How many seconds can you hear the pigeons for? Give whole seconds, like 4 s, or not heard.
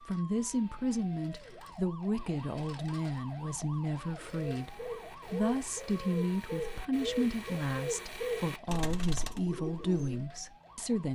6 s.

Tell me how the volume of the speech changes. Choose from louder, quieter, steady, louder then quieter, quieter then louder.
steady.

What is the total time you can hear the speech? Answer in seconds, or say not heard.
11 s.